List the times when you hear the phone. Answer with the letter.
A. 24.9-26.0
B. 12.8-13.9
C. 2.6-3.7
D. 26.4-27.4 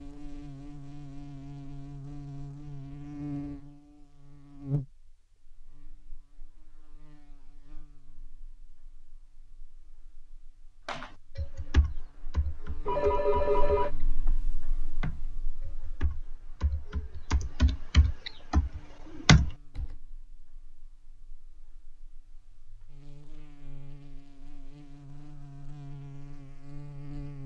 B.